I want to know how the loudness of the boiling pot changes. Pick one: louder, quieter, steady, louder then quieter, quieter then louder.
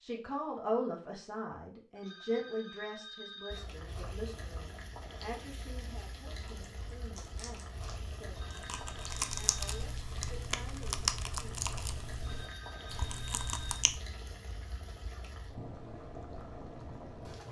steady.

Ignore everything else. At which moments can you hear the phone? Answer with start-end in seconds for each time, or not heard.
1.9-3.6, 8.3-9.8, 12.2-13.8.